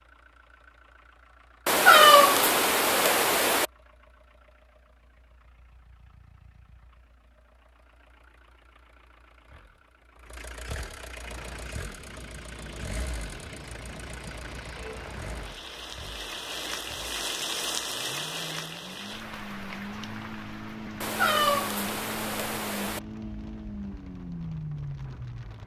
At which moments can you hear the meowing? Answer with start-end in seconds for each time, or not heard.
1.6-3.6, 21.0-23.0.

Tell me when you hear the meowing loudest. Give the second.
2 s.